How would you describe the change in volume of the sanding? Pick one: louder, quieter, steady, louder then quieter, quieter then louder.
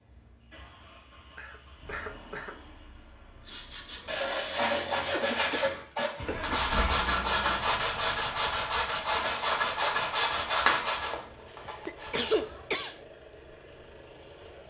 steady.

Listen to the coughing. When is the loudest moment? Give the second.
12 s.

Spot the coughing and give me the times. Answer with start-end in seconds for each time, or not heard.
1.4-2.5, 5.1-6.9, 11.4-12.9.